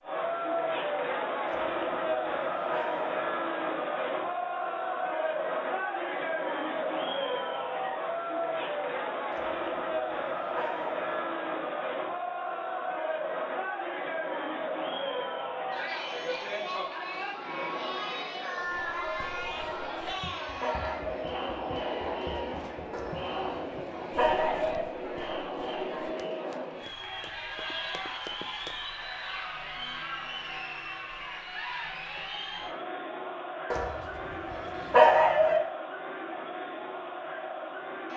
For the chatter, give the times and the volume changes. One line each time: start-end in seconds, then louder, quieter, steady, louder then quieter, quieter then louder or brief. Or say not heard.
0.0-38.1 quieter.